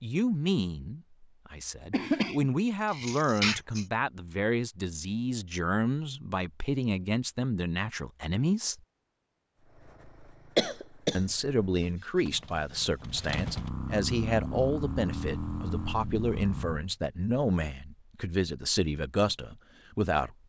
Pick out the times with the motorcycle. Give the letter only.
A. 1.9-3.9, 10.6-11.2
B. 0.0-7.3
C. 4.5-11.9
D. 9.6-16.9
D.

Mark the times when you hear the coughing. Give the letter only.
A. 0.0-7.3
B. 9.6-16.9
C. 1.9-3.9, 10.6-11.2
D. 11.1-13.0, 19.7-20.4
C.